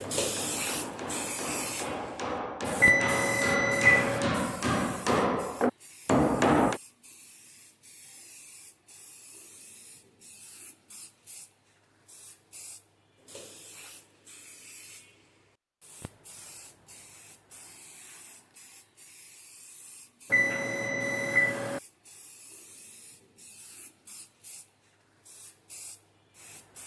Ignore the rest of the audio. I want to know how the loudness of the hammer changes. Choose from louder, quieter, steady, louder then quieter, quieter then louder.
louder.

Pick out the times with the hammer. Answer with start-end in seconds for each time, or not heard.
0.0-6.8.